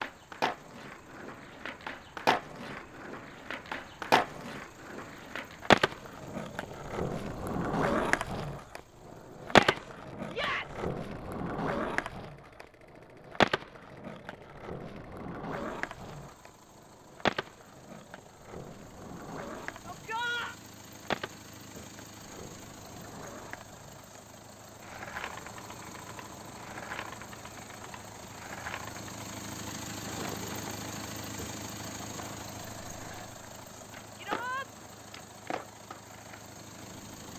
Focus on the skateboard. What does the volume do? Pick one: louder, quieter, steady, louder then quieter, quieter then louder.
quieter.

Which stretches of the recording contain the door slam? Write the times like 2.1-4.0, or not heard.
not heard.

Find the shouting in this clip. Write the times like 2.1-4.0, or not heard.
9.4-10.9, 19.9-20.6, 34.1-34.6.